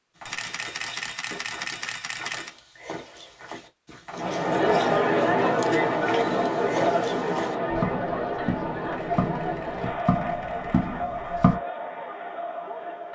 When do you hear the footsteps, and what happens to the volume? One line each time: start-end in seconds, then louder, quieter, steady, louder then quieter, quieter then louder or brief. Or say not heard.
0.1-11.6 louder.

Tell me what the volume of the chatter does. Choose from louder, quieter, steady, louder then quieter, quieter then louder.
quieter.